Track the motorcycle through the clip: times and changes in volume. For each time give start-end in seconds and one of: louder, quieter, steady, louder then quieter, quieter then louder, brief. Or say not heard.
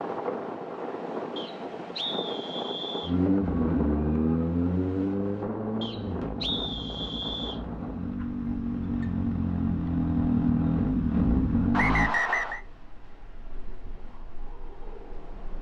3.0-12.1 quieter then louder.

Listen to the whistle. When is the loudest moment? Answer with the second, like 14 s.
12 s.